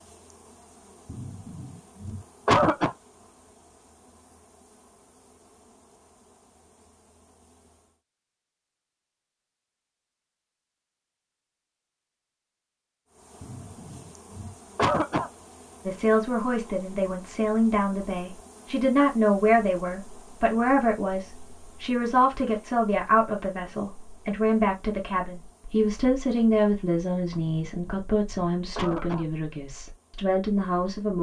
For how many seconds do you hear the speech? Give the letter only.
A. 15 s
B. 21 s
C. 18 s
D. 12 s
A.